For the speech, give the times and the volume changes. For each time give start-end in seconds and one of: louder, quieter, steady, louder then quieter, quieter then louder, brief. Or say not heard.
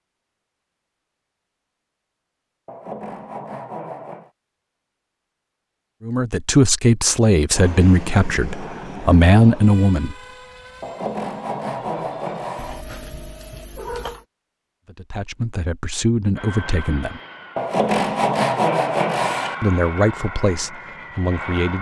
6.0-10.2 quieter then louder
14.8-17.2 brief
19.6-21.7 brief.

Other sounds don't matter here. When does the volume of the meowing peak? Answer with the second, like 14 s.
14 s.